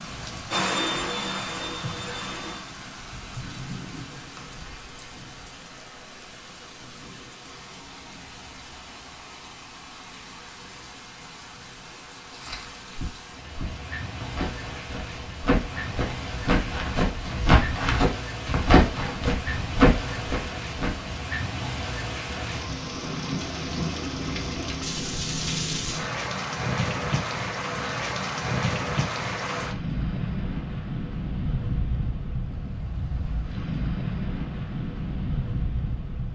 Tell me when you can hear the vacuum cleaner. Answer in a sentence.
You can hear the vacuum cleaner from 0.2 to 2.8 s.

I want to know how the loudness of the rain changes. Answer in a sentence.
The volume of the rain goes up.